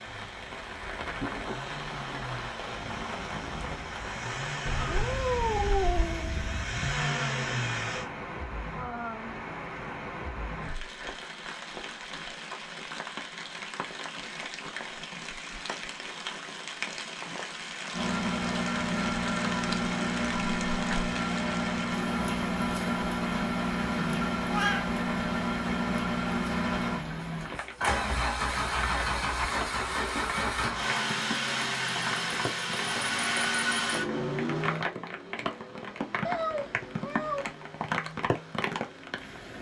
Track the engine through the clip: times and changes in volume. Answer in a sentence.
You can hear the engine from 0.0 to 8.1 s, getting louder; and from 17.9 to 39.5 s, getting quieter.